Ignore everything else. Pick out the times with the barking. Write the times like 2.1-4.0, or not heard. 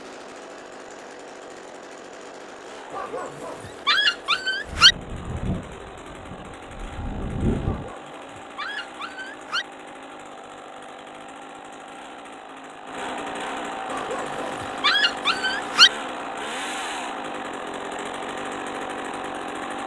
2.9-5.0, 7.7-9.7, 13.9-15.9.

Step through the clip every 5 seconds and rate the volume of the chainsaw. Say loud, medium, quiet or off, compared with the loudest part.
medium, medium, loud, loud.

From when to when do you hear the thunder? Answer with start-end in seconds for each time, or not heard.
4.7-8.0.